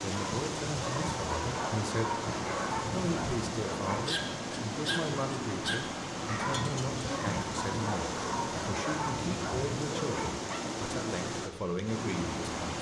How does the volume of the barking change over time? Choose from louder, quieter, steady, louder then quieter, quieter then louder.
steady.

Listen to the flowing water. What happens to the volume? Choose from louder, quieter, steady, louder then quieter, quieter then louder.
steady.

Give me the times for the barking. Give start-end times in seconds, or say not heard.
0.1-10.7.